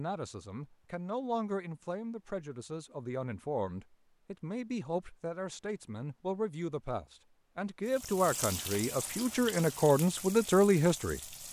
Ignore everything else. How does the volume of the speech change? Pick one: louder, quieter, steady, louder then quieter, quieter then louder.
louder.